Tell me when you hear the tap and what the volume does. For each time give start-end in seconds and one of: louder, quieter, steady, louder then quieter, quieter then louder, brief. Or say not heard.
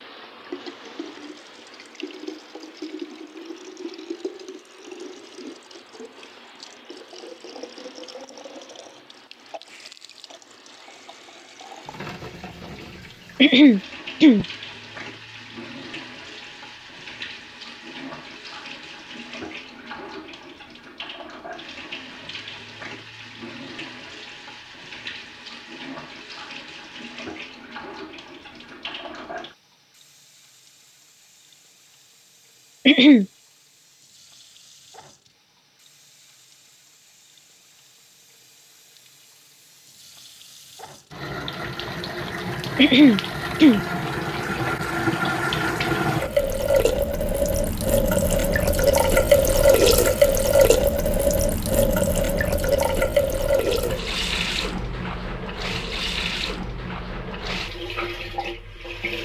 0.0-59.2 louder.